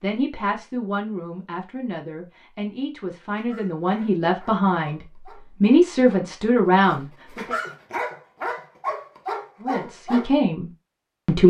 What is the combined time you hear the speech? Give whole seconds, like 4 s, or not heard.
9 s.